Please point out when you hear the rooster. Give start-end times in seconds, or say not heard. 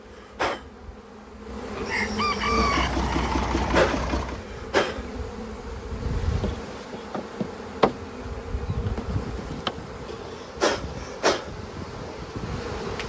1.9-3.4.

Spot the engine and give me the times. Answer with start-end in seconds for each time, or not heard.
2.4-4.4.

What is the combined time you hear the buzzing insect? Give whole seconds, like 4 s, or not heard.
13 s.